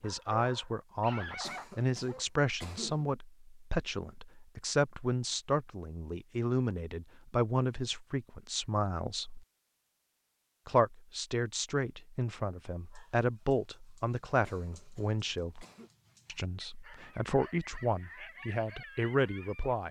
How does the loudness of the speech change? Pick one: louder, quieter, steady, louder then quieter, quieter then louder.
steady.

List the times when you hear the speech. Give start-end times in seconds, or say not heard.
0.0-9.4, 10.7-15.7, 16.2-19.8.